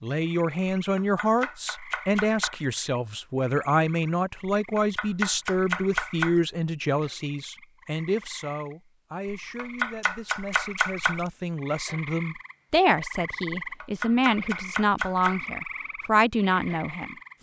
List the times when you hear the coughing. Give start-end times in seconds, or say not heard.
not heard.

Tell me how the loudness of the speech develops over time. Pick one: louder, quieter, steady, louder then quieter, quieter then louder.
quieter then louder.